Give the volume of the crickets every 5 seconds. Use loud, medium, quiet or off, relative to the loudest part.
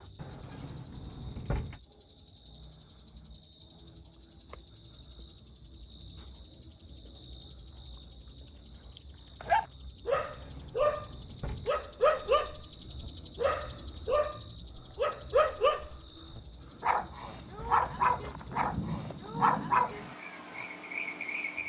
medium, medium, loud, medium, medium.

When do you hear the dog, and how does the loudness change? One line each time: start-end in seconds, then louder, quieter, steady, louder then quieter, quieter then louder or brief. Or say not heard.
9.4-20.6 steady.